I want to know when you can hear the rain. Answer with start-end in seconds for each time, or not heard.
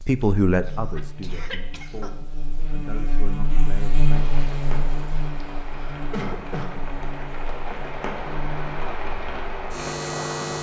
4.0-10.5.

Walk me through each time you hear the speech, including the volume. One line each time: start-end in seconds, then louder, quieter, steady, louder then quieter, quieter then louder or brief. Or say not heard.
0.0-4.4 quieter.